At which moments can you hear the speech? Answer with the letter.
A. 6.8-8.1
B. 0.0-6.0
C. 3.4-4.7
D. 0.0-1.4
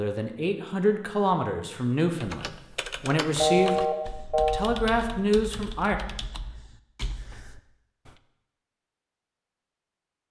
B.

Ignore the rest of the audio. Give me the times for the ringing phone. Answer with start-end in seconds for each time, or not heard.
3.4-4.7.